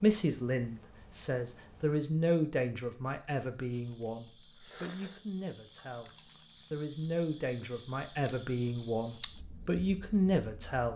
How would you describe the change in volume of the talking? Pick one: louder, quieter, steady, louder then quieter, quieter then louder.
quieter then louder.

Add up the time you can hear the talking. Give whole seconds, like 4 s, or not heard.
11 s.